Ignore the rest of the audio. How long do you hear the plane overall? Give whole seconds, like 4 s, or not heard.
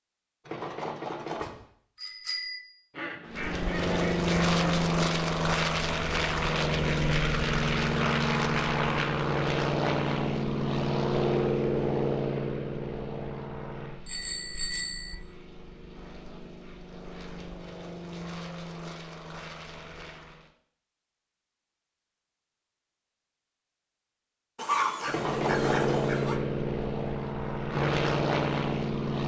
21 s.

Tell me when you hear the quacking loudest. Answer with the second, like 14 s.
25 s.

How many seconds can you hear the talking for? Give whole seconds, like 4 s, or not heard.
not heard.